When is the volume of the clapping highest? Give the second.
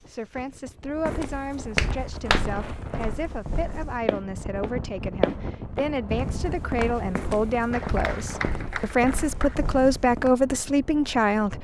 2 s.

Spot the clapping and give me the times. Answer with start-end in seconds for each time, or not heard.
1.8-2.5, 7.7-9.6.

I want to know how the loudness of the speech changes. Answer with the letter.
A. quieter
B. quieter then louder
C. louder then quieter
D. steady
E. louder
E.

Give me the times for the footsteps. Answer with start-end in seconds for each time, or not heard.
0.9-10.3.